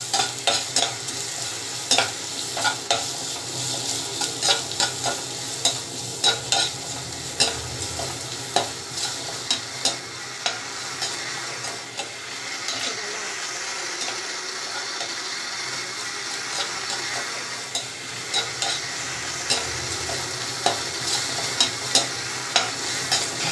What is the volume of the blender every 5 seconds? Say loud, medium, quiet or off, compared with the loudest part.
medium, medium, loud, loud, loud.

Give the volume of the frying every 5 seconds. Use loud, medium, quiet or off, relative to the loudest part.
loud, loud, medium, medium, loud.